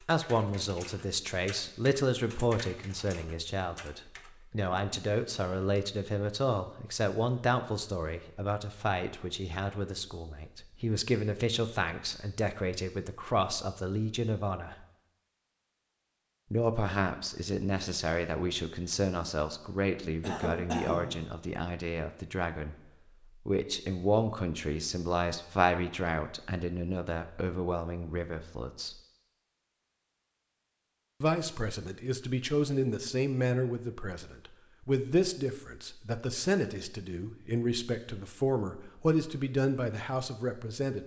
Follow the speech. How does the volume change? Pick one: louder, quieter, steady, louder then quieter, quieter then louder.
steady.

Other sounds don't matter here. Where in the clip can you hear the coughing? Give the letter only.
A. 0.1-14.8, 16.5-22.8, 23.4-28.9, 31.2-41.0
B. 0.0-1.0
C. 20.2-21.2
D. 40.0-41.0
C.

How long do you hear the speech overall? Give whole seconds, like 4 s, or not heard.
36 s.